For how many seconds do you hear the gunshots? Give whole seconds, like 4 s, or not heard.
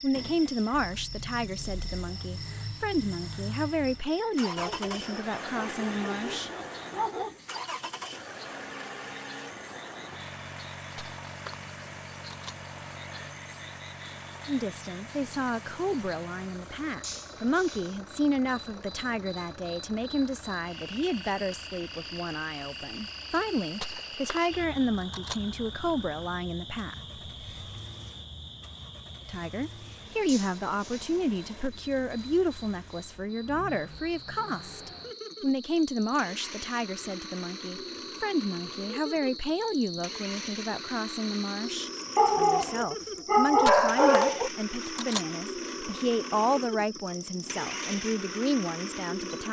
5 s.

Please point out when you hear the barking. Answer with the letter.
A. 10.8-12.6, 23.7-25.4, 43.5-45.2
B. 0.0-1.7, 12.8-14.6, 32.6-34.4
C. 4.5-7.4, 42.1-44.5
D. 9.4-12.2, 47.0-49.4
C.